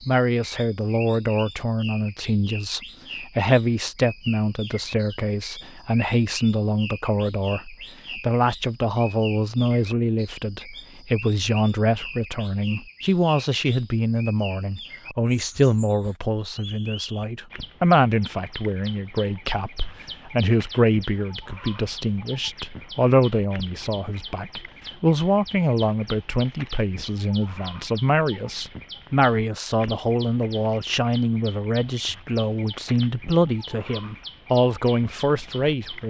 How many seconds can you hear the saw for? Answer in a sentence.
You can't hear the saw here.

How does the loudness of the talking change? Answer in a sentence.
The loudness of the talking stays about the same.